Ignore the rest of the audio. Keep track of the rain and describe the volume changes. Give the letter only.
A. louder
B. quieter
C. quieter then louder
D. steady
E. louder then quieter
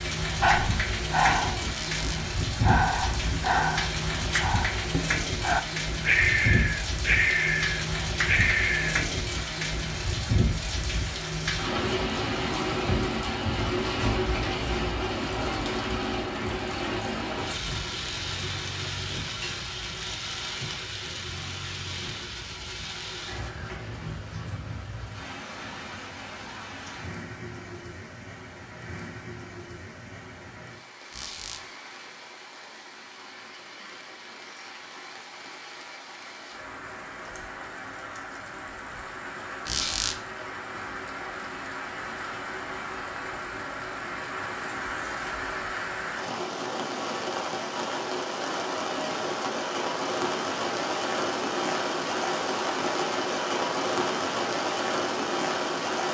C.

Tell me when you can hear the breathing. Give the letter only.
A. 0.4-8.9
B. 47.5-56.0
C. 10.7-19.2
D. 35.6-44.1
A.